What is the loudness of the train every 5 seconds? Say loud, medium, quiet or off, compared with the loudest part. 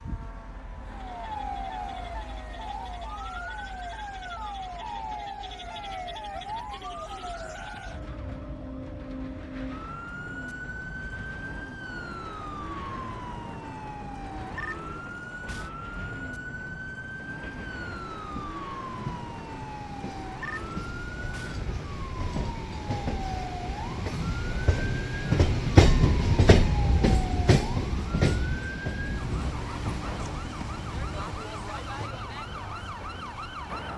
quiet, quiet, quiet, quiet, medium, loud, quiet.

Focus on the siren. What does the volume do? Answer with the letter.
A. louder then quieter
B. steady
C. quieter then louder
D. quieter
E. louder
B.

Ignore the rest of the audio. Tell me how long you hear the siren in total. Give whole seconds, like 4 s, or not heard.
34 s.